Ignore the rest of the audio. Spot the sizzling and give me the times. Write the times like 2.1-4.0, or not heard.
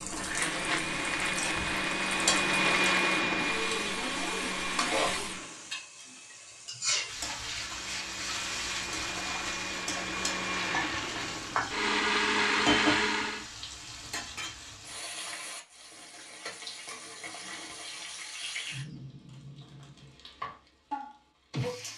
0.0-21.9.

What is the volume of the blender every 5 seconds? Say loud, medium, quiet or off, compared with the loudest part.
loud, medium, loud, off, off.